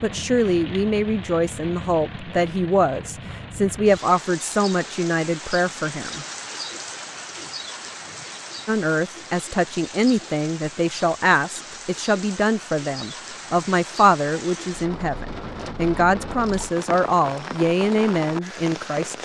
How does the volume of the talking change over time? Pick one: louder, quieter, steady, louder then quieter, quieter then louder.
steady.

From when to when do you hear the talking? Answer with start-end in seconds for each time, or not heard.
0.0-6.2, 8.7-19.1.